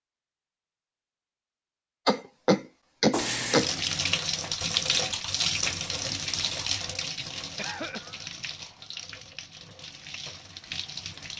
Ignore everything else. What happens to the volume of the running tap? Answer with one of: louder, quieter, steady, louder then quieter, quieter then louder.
quieter.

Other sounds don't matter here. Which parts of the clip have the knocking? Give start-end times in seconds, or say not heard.
not heard.